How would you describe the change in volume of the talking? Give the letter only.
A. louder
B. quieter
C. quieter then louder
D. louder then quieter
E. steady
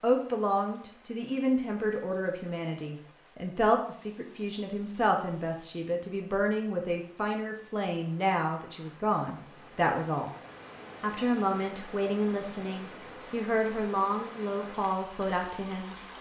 E.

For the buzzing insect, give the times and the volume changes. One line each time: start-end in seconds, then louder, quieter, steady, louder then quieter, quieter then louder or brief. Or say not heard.
not heard.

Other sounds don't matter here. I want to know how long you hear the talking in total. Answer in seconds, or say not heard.
15 s.